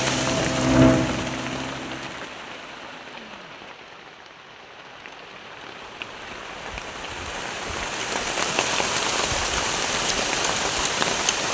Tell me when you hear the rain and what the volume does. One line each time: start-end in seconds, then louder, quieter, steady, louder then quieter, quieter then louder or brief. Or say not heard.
0.0-11.4 quieter then louder.